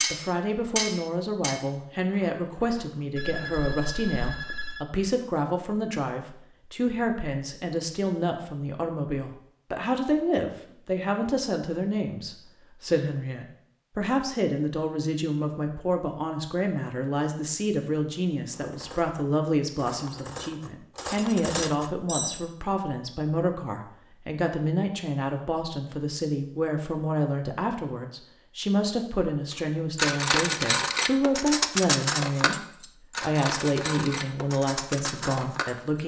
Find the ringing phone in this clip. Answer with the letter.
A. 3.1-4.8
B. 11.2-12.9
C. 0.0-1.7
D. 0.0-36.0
A.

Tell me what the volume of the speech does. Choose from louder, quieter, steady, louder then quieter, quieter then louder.
steady.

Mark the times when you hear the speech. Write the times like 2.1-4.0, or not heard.
0.0-36.0.